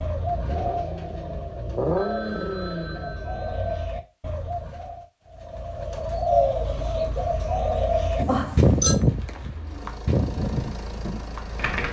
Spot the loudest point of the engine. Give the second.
2 s.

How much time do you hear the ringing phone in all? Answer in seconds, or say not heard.
3 s.